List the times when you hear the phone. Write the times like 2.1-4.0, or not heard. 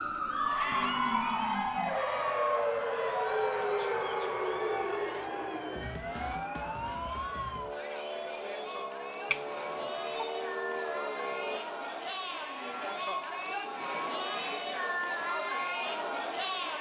9.3-10.3.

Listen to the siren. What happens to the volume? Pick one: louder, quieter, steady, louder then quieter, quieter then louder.
quieter.